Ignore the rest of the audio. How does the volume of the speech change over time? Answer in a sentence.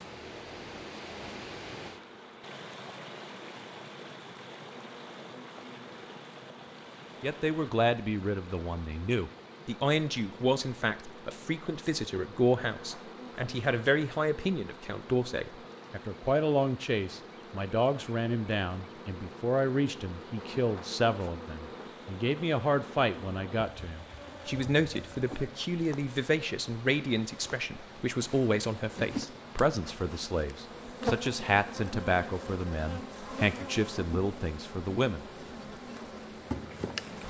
The loudness of the speech stays about the same.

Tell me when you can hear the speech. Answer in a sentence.
You can hear the speech from 7.2 to 35.2 s.